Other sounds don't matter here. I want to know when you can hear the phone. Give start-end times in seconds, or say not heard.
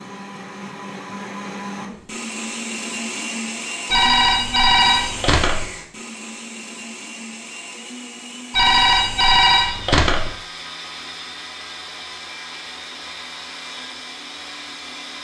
3.9-5.7, 8.5-10.3.